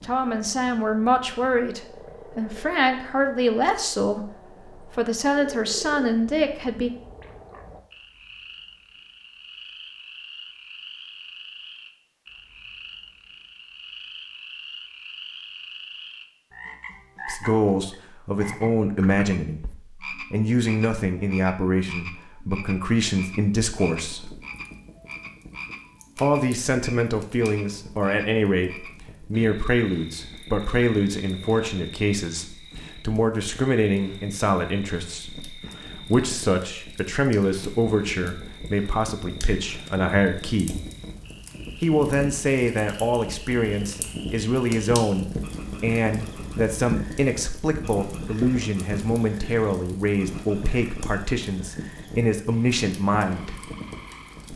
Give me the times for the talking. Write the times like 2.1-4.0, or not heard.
0.0-6.9, 17.2-24.4, 26.1-40.8, 41.8-53.7.